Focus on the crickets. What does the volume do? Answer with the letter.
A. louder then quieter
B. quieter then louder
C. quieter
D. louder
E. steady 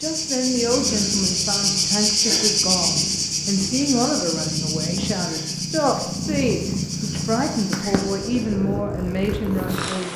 C.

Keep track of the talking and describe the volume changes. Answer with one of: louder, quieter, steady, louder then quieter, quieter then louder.
steady.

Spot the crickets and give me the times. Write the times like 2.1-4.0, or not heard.
0.0-8.6.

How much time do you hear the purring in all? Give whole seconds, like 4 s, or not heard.
10 s.